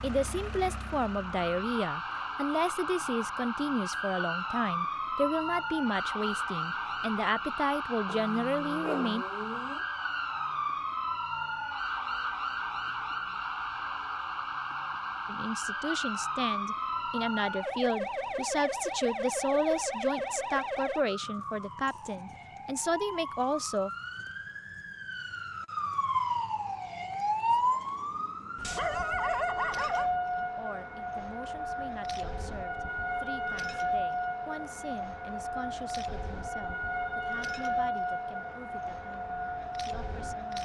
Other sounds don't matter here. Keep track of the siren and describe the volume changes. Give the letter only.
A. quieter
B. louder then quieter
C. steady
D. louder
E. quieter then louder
C.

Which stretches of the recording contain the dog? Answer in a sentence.
You can hear the dog from 8.1 to 9.8 s and from 28.6 to 30.1 s.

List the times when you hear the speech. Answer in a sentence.
The speech can be heard from 0.0 to 9.2 s, from 15.2 to 23.9 s and from 30.4 to 40.6 s.